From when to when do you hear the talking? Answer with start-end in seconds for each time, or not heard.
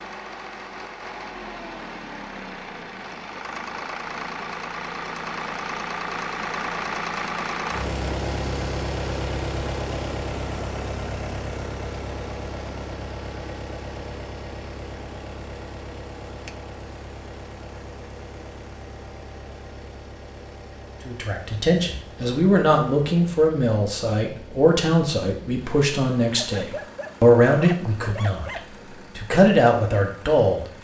21.1-30.6.